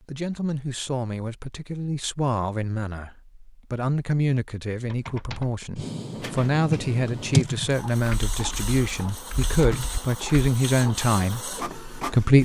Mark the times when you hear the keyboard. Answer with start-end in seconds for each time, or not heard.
4.8-10.5.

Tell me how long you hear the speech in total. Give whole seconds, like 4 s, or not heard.
12 s.